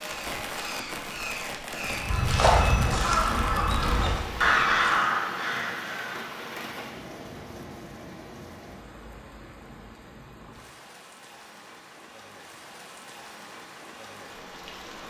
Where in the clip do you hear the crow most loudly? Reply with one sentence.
The volume of the crow peaks at 5 seconds.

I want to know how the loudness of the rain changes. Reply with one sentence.
The volume of the rain goes down.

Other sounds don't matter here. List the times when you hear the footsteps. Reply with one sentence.
You can hear the footsteps from 1.9 to 4.8 s.